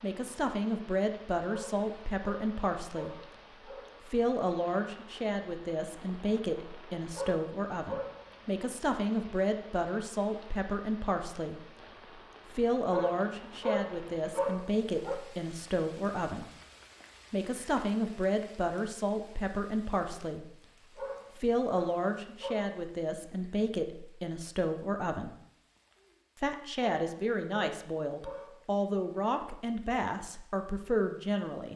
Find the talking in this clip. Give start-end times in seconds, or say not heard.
0.0-3.2, 4.0-11.7, 12.5-16.4, 17.3-20.6, 21.4-25.4, 26.4-31.7.